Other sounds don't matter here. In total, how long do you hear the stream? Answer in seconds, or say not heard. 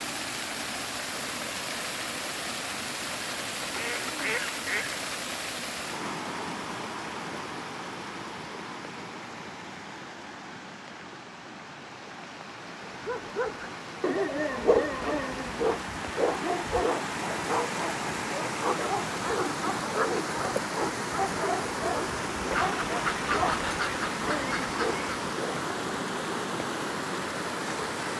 28 s.